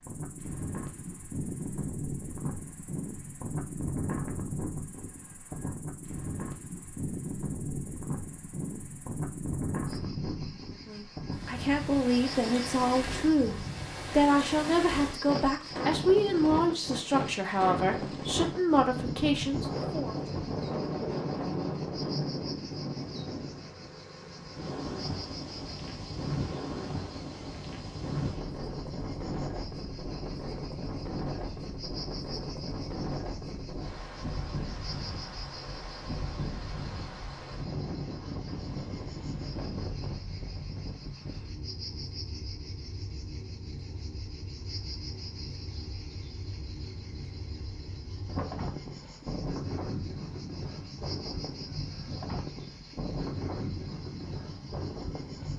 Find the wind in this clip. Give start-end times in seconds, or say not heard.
0.0-55.5.